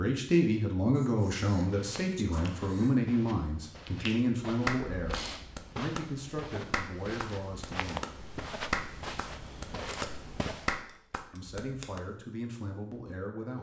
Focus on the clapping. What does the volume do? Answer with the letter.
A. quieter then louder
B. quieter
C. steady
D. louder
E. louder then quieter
A.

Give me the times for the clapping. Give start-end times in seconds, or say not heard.
4.0-12.0.